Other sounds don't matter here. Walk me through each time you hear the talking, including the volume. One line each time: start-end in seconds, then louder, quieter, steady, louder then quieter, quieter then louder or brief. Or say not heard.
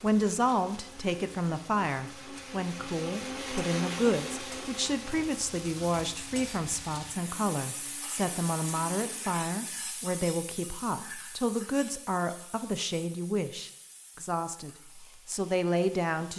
0.0-16.3 steady.